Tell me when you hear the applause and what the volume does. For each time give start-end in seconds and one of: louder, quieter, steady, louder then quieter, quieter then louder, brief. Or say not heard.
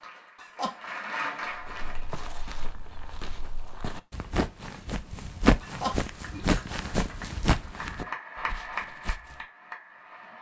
0.0-2.2 brief
6.0-10.3 louder then quieter.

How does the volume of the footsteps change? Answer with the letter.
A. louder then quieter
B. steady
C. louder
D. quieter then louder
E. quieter
A.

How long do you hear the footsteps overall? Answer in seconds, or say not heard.
8 s.